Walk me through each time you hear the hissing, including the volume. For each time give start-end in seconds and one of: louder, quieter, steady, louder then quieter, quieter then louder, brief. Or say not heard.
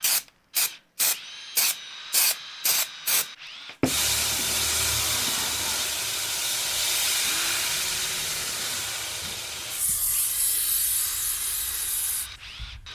0.0-12.9 quieter.